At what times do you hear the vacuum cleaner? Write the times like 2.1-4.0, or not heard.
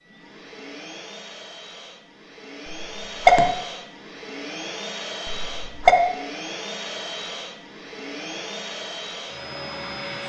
0.0-10.2.